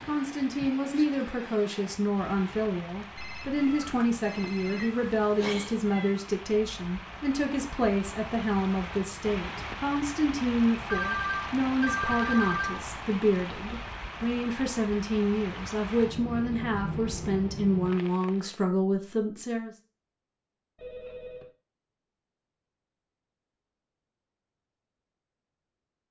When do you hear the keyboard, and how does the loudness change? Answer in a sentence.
You can't hear the keyboard here.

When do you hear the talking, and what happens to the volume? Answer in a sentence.
You can hear the talking from 0.0 to 19.7 s, at a steady volume.